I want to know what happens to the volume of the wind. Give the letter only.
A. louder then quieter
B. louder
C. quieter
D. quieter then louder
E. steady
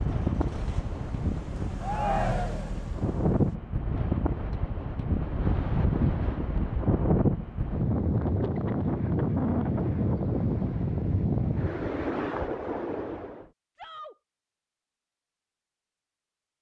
B.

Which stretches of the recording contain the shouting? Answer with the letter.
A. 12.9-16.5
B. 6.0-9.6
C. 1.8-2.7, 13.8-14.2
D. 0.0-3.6
C.